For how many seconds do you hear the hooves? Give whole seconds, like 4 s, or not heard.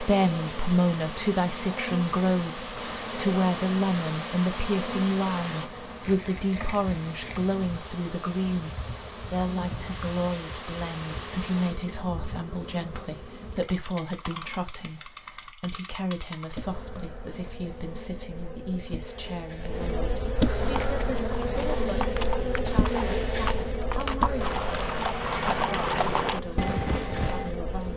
7 s.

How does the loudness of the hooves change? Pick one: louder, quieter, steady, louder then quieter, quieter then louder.
louder.